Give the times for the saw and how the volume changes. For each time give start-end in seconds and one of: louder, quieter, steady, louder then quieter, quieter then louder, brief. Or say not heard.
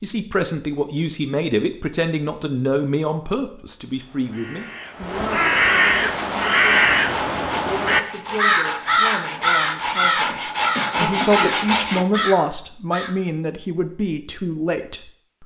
6.1-12.1 louder.